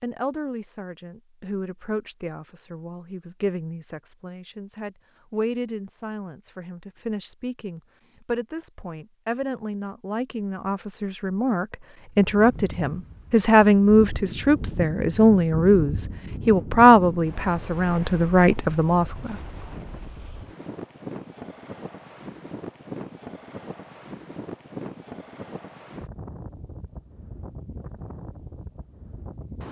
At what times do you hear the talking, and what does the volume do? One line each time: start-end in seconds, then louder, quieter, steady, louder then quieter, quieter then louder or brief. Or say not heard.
0.0-19.4 louder.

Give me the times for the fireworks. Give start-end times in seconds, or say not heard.
not heard.